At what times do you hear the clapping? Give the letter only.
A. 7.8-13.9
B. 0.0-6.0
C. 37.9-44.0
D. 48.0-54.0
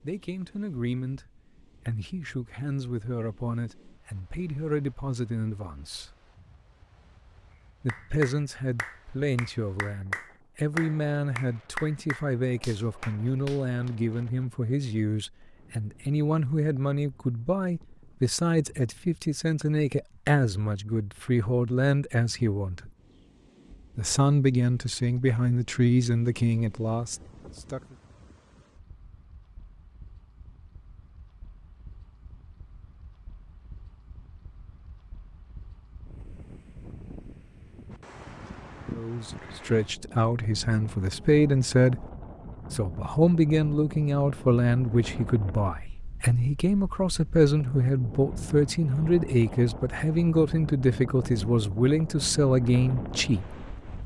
A.